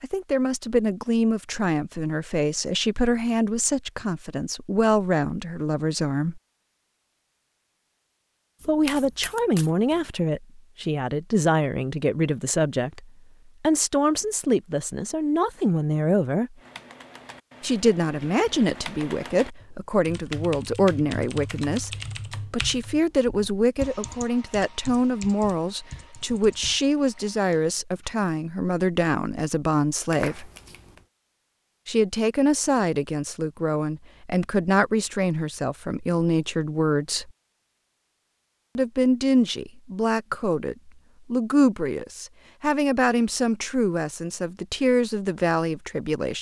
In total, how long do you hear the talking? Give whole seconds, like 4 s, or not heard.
40 s.